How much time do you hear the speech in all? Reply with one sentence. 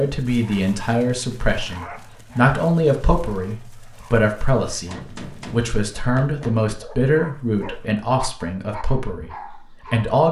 You can hear the speech for 10 seconds altogether.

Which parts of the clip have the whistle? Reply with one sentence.
You can't hear the whistle here.